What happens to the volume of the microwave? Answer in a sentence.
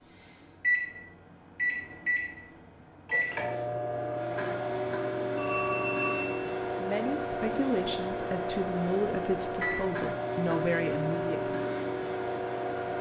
The loudness of the microwave stays about the same.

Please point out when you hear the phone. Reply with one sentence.
The phone can be heard from 5.3 to 6.5 s.